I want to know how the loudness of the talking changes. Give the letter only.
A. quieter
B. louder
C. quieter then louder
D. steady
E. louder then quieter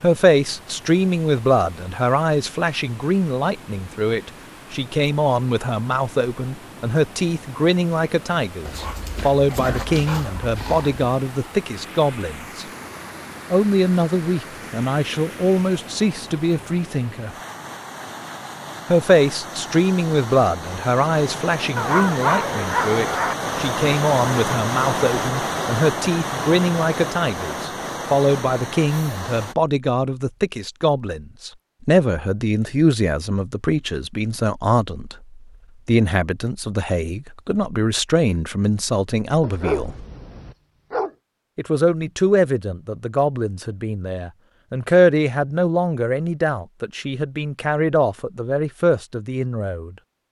D.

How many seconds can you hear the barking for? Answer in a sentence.
You can hear the barking for 6 seconds altogether.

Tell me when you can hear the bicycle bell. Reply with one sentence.
You can't hear the bicycle bell here.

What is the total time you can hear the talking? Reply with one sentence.
The talking can be heard for 46 seconds in total.